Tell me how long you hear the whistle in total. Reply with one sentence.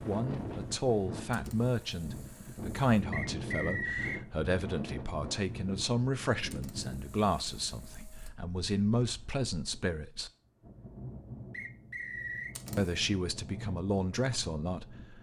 You can hear the whistle for 2 seconds altogether.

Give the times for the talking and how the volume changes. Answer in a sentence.
The talking can be heard from 0.1 to 10.3 s, at a steady volume; and briefly from 12.8 to 15.1 s.